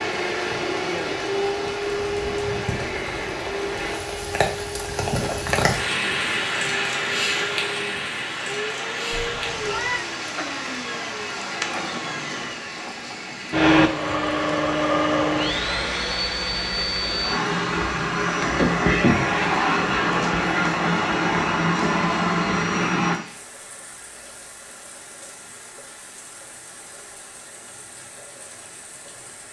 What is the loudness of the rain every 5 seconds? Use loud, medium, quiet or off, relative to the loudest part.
medium, loud, medium, quiet, quiet, quiet.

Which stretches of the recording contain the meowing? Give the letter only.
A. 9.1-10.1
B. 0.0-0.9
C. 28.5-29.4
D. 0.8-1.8
A.